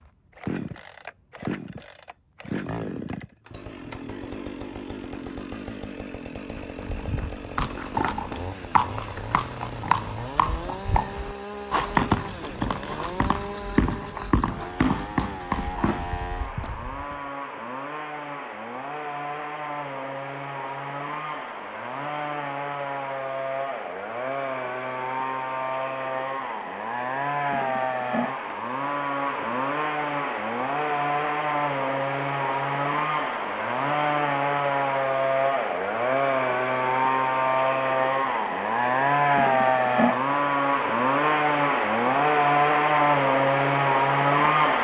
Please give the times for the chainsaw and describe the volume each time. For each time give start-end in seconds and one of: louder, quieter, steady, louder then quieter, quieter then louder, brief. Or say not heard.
0.0-44.8 louder.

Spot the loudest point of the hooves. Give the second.
12 s.